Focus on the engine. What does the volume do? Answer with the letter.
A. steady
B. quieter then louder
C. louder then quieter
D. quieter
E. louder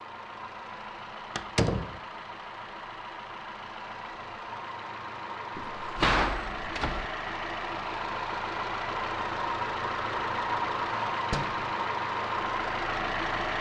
E.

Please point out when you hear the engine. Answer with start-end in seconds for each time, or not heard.
0.0-13.5.